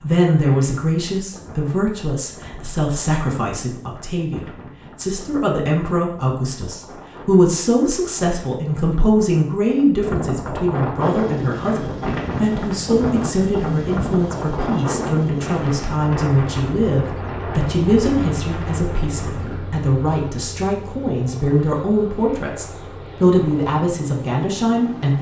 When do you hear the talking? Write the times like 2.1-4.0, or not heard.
0.0-25.1.